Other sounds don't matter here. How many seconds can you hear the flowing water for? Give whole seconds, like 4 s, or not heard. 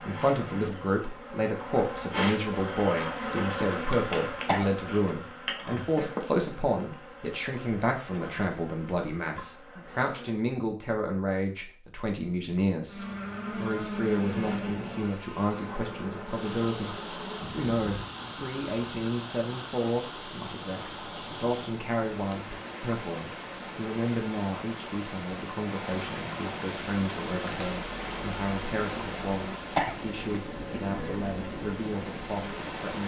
17 s.